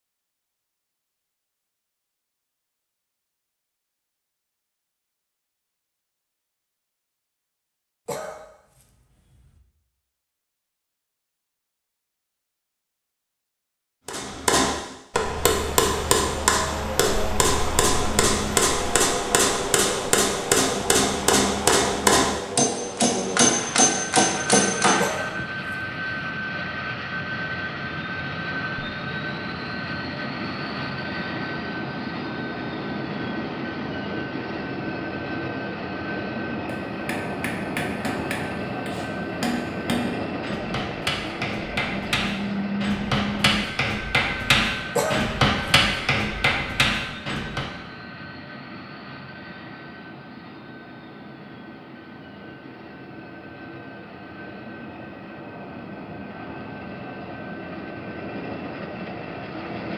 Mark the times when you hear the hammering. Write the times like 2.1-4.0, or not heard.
14.1-25.1, 36.9-47.7.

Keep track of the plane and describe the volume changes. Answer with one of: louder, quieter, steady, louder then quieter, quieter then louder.
quieter.